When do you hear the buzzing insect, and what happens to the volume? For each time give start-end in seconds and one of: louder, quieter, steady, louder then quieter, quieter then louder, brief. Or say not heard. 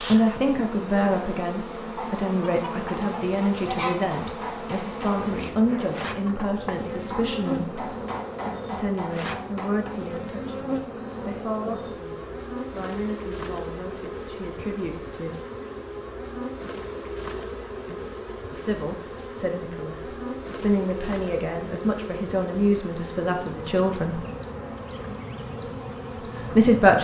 0.0-26.9 steady.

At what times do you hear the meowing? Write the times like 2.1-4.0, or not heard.
not heard.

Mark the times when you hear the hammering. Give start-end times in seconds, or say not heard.
4.0-9.9.